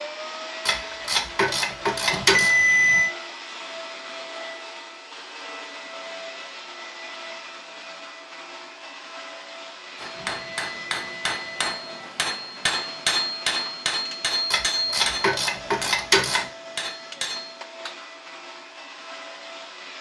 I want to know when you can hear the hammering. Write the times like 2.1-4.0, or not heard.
9.9-17.6.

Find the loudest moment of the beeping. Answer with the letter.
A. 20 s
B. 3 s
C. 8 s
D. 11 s
B.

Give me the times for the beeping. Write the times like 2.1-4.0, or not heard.
2.1-3.1, 10.2-11.7.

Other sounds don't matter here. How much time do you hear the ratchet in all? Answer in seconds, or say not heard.
4 s.